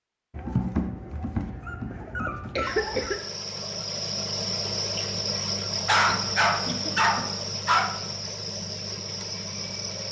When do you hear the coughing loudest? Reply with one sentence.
The loudest moment of the coughing is at 3 seconds.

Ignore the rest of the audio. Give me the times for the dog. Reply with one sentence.
You can hear the dog from 0.3 to 3.2 s and from 5.8 to 7.9 s.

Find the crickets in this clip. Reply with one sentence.
You can hear the crickets from 2.6 to 10.0 s.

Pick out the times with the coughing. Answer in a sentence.
You can hear the coughing from 2.3 to 3.2 s and from 6.0 to 7.3 s.